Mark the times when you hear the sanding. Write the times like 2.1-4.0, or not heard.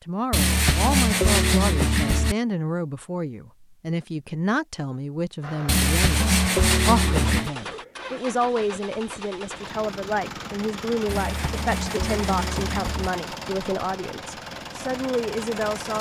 0.3-2.4, 5.7-7.5, 11.1-13.1.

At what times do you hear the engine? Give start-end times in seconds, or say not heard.
5.4-15.9.